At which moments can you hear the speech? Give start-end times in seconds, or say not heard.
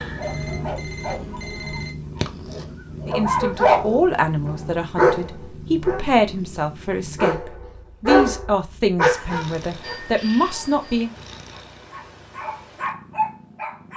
3.0-11.1.